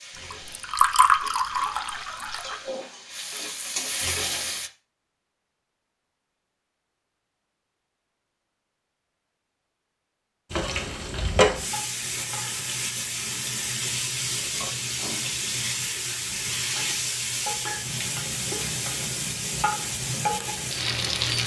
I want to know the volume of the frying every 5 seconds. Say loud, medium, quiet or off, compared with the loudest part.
medium, off, loud, loud, loud.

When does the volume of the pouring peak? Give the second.
1 s.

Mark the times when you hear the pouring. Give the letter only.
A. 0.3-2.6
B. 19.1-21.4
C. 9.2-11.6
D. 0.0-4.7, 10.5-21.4
A.